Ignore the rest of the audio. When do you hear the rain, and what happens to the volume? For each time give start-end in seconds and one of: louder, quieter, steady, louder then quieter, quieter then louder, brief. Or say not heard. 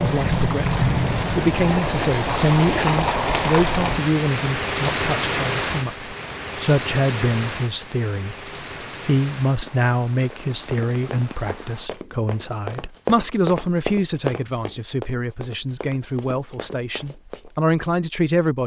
0.0-11.9 quieter.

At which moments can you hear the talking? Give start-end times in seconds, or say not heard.
0.0-18.6.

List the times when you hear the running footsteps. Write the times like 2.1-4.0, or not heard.
10.3-17.5.